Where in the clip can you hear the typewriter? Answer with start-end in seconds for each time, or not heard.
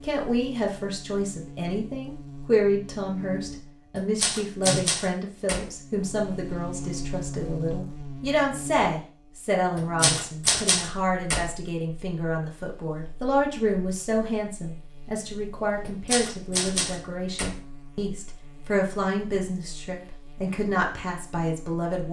4.0-5.7, 9.8-11.4, 15.8-17.6.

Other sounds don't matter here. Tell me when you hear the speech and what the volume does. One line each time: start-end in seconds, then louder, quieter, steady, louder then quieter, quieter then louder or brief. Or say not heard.
0.0-22.0 steady.